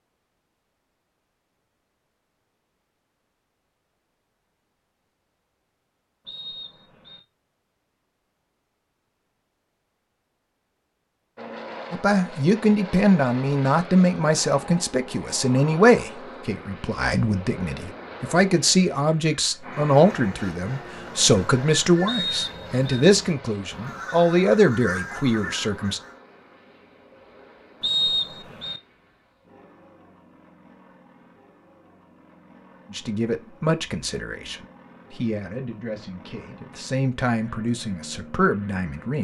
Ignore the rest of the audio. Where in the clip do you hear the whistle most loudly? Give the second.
28 s.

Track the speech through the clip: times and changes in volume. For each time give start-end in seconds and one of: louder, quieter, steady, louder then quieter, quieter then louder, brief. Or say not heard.
11.9-26.0 steady
32.9-39.2 quieter then louder.